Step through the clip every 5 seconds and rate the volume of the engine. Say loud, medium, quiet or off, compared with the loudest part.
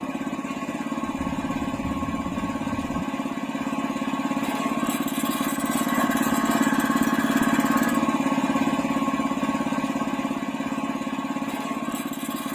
medium, loud, medium.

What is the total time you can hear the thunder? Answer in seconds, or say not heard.
2 s.